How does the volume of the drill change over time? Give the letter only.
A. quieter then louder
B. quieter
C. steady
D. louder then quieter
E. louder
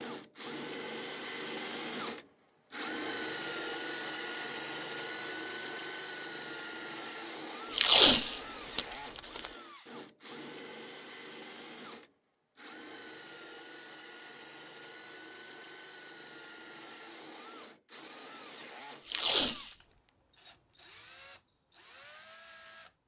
B.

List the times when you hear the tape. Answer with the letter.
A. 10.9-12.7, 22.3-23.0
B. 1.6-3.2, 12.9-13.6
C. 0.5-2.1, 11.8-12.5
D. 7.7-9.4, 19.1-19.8
D.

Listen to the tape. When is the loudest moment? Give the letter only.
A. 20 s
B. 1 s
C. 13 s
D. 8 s
D.